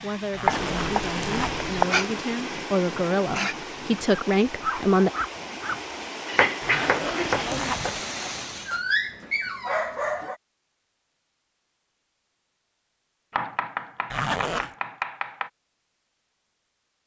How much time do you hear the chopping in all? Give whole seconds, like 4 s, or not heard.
5 s.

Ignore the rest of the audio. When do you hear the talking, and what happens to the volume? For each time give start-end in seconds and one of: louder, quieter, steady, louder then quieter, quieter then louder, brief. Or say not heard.
0.0-5.1 louder.